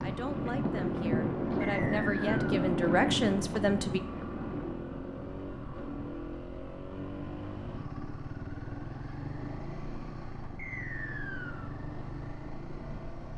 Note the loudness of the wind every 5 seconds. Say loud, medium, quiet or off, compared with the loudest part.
loud, quiet, quiet.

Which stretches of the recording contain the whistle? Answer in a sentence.
You can hear the whistle from 1.6 to 2.6 s and from 10.6 to 11.7 s.